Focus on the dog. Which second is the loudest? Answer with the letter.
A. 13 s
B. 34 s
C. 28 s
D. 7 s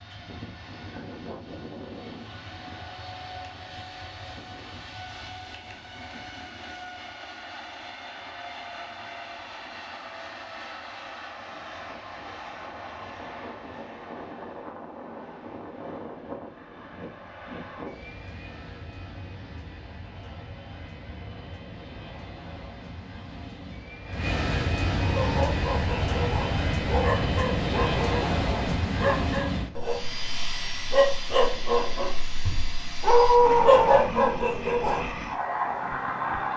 B.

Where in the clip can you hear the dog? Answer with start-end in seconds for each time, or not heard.
24.9-35.1.